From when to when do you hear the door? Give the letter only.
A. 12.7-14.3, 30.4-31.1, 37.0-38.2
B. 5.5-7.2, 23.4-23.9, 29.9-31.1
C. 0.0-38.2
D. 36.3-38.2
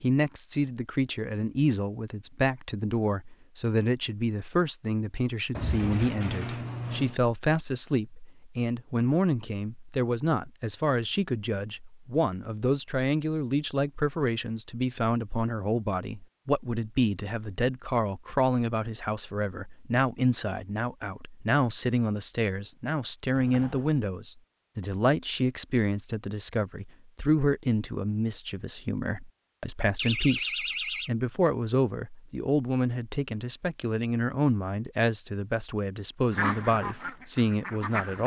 B.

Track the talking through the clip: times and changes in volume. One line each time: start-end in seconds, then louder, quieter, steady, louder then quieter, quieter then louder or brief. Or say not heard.
0.0-38.2 steady.